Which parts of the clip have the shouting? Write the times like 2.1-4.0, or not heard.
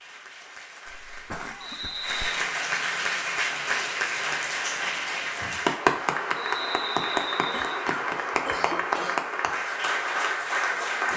not heard.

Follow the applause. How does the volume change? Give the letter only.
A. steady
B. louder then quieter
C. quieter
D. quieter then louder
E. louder
E.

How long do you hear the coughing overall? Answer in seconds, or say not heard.
3 s.